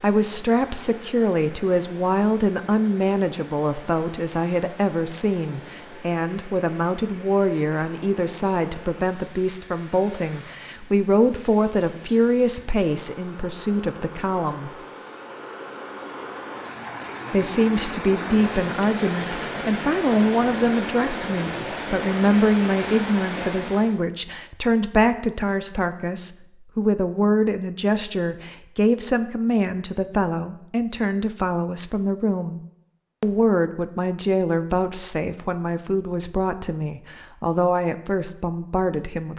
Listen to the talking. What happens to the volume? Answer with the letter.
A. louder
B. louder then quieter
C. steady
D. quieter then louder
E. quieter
C.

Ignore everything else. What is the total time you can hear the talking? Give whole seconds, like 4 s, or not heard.
36 s.